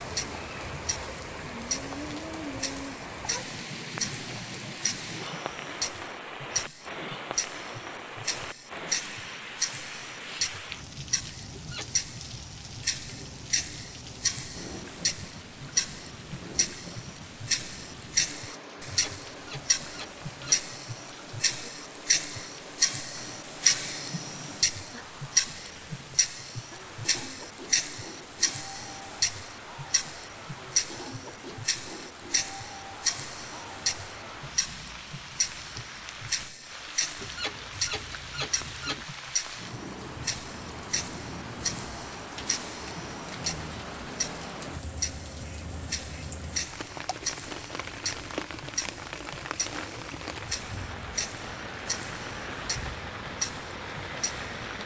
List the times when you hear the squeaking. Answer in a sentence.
You can hear the squeaking from 11.6 to 12.1 s, from 18.9 to 20.6 s and from 37.1 to 39.0 s.